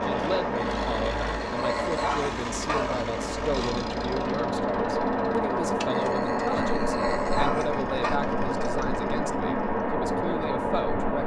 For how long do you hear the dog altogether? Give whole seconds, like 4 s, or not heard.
5 s.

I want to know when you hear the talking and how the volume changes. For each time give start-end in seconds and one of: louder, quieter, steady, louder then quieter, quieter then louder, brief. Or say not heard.
0.0-11.2 steady.